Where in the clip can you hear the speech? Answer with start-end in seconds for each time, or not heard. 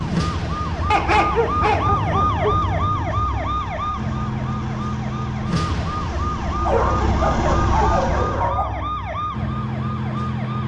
not heard.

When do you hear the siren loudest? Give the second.
2 s.